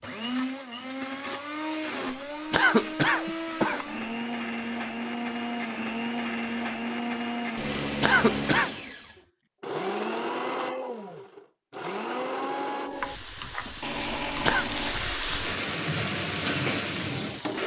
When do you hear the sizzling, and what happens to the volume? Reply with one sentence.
You can hear the sizzling from 12.8 to 17.6 s, getting louder.